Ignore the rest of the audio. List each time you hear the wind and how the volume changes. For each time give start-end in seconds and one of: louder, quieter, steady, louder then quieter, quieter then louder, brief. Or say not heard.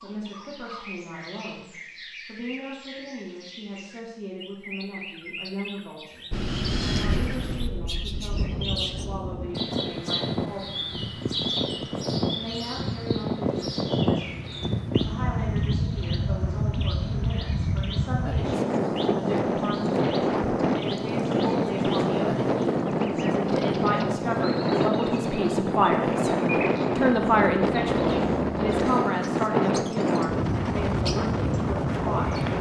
6.3-32.5 louder.